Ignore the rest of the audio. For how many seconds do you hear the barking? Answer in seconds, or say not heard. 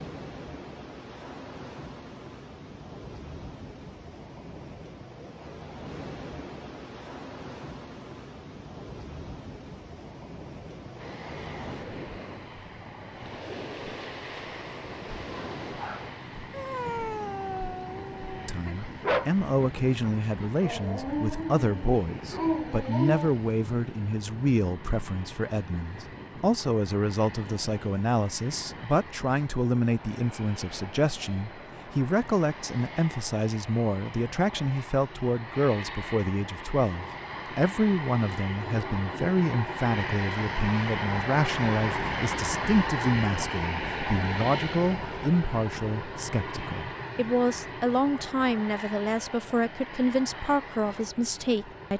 8 s.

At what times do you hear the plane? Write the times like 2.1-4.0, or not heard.
10.9-51.9.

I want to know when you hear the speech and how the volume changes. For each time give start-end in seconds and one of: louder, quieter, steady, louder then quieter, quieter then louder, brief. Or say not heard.
18.4-51.9 steady.